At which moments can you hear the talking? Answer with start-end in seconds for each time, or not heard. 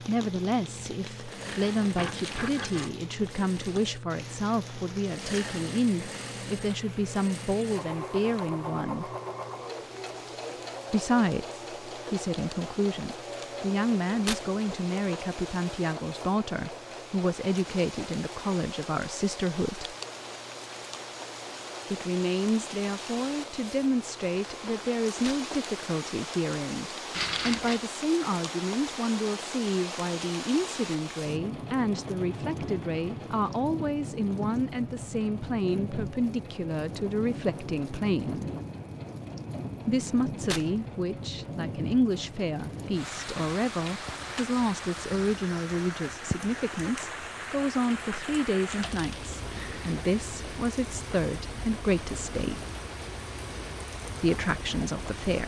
0.1-9.1, 10.9-19.9, 21.9-38.5, 39.9-52.6, 54.2-55.4.